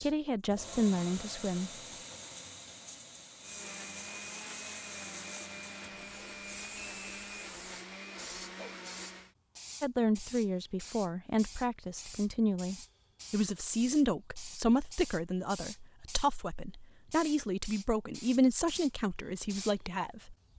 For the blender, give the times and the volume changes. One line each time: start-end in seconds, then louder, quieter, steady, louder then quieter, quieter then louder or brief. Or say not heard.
3.4-9.3 steady.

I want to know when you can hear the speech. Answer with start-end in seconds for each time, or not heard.
0.0-1.7, 9.8-20.4.